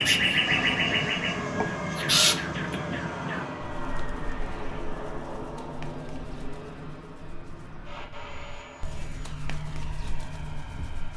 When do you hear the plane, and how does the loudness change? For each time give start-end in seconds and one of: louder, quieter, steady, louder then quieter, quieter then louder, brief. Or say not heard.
0.0-11.1 quieter.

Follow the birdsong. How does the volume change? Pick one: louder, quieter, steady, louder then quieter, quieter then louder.
quieter then louder.